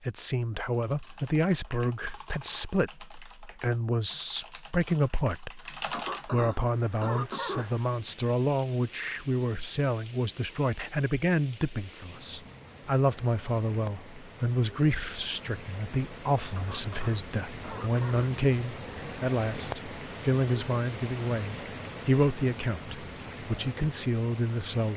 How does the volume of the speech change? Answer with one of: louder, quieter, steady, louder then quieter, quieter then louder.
steady.